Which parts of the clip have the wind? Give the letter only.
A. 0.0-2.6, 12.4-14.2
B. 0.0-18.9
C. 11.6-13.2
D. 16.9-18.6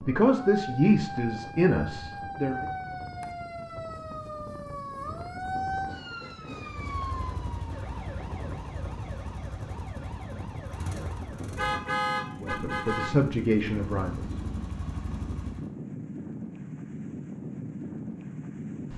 B.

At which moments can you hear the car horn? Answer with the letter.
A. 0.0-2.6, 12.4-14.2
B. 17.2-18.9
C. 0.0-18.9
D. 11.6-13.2
D.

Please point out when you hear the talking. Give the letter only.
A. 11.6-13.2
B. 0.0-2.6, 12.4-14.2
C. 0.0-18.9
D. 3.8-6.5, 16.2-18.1
B.